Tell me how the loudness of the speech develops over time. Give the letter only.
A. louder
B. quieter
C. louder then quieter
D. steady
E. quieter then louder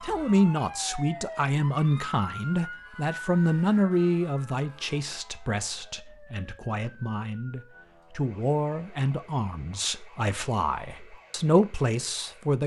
E.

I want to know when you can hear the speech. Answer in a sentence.
The speech can be heard from 0.0 to 12.6 s.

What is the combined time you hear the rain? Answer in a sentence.
The rain can't be heard in this clip.